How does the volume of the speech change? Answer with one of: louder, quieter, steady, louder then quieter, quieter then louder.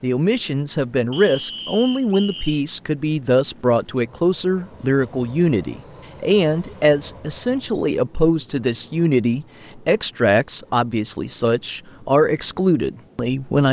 steady.